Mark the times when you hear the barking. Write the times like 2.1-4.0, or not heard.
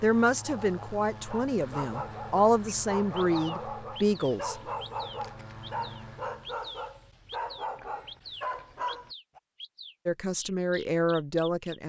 0.4-9.4.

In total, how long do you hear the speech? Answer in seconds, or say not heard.
6 s.